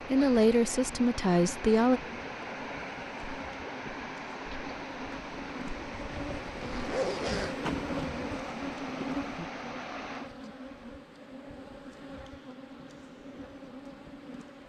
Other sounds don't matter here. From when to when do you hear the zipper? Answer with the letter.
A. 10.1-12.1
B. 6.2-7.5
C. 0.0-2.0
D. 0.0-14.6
B.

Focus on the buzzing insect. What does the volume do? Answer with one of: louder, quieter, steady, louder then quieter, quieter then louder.
louder then quieter.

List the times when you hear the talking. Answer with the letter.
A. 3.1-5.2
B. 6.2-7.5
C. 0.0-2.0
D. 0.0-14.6
C.